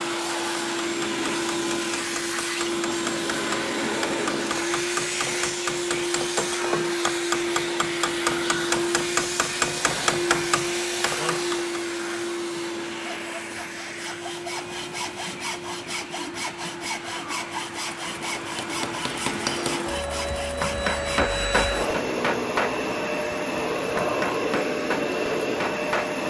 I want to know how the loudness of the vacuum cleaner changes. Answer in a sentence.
The volume of the vacuum cleaner goes down, then up.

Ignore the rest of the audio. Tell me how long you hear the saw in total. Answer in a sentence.
You can hear the saw for 11 seconds altogether.